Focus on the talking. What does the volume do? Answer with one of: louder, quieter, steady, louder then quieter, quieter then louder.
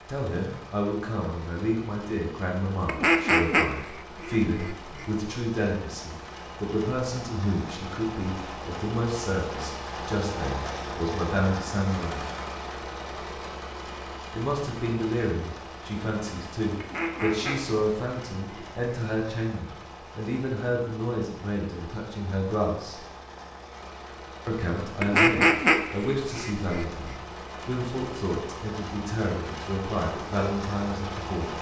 steady.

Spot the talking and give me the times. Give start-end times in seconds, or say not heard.
0.1-12.2, 14.3-23.0, 24.4-31.5.